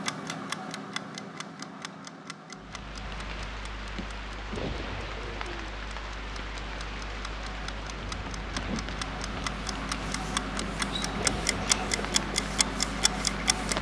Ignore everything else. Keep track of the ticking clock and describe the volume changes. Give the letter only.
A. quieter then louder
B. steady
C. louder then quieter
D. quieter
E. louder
A.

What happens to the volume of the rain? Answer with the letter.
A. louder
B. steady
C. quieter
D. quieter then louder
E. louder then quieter
B.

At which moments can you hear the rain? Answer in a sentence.
The rain can be heard from 2.5 to 13.7 s.